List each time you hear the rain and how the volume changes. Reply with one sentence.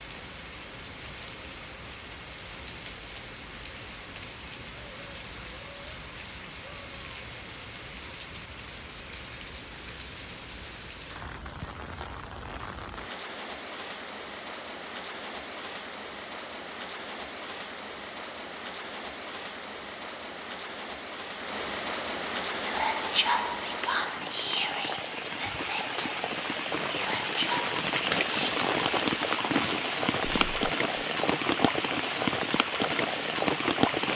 You can hear the rain from 0.0 to 34.1 s, getting louder.